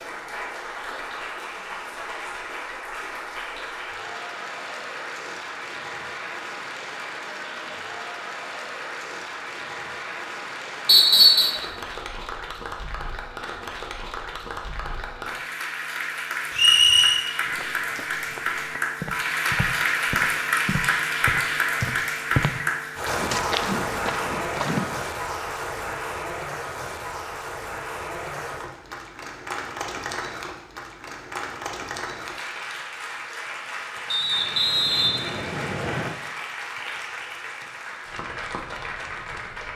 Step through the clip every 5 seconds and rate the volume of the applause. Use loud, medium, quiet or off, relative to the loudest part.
medium, medium, medium, loud, loud, medium, medium, medium.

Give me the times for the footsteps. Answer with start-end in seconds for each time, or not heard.
17.6-25.1.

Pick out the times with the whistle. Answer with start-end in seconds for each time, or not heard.
10.8-11.6, 16.6-17.2, 34.1-36.1.